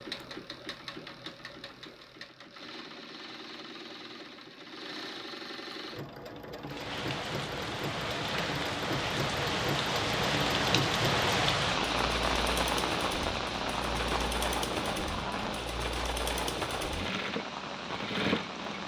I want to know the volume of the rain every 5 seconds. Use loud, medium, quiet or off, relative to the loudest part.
off, loud, loud, medium.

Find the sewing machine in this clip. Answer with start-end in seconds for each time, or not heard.
0.0-18.8.